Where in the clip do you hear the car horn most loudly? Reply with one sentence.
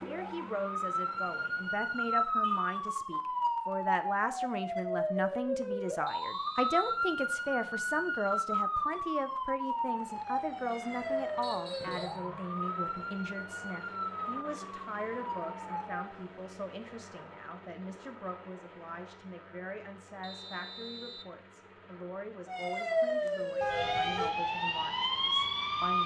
The loudest moment of the car horn is at 24 seconds.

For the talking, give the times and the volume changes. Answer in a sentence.
You can hear the talking from 0.0 to 26.0 s, getting quieter.